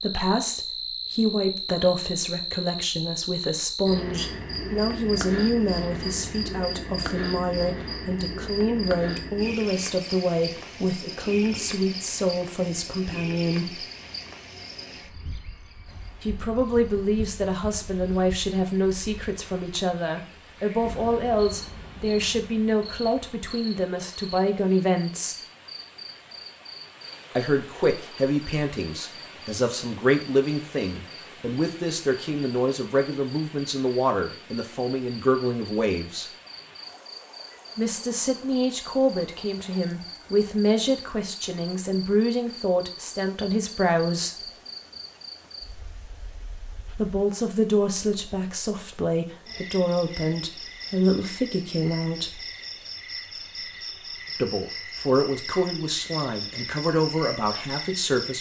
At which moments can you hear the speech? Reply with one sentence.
The speech can be heard from 0.0 to 13.8 s, from 16.2 to 25.4 s, from 27.4 to 36.2 s, from 37.8 to 44.5 s, from 47.0 to 52.4 s and from 54.3 to 58.3 s.